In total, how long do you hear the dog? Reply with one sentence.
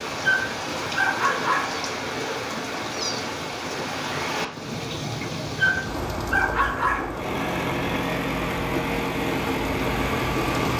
The dog can be heard for 3 seconds in total.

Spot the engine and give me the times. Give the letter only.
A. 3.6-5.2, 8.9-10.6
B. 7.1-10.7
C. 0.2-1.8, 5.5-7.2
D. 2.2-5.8
B.